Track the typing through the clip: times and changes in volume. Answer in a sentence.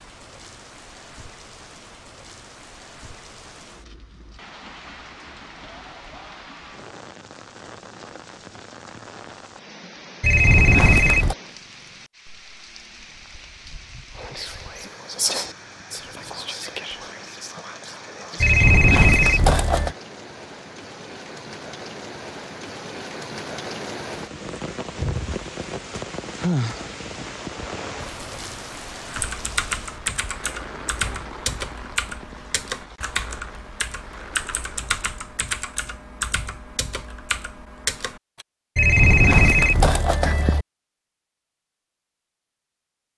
The typing can be heard from 29.1 to 38.5 s, at a steady volume.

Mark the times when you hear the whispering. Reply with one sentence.
You can hear the whispering from 14.2 to 19.4 s.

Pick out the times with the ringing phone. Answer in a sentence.
The ringing phone can be heard from 10.2 to 11.3 s, from 18.4 to 19.9 s and from 38.8 to 40.6 s.